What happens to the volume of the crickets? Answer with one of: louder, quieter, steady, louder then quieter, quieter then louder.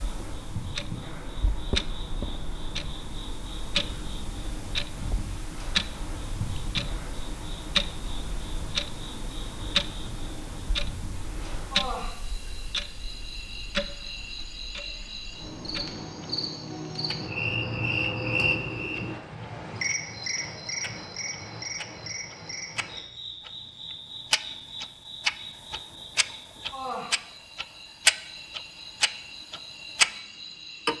louder then quieter.